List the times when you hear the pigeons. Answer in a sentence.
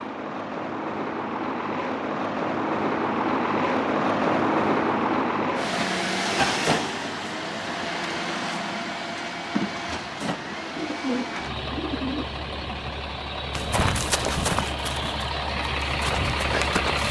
You can hear the pigeons from 10.8 to 12.3 s.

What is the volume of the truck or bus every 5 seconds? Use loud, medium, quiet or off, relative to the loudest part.
loud, loud, medium, loud.